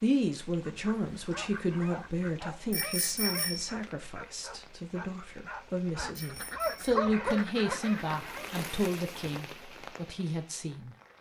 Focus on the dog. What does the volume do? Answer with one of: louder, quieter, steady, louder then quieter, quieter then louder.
louder.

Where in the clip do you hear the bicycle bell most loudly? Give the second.
3 s.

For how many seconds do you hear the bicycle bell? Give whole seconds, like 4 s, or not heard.
2 s.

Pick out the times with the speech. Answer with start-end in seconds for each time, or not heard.
0.0-11.1.